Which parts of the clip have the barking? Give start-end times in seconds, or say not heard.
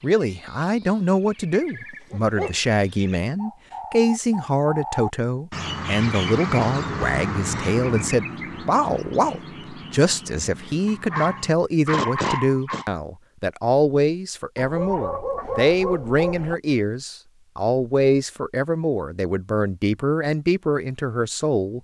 1.9-2.5, 10.8-12.9, 14.6-16.6.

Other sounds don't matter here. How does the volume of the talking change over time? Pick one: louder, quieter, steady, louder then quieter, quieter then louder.
steady.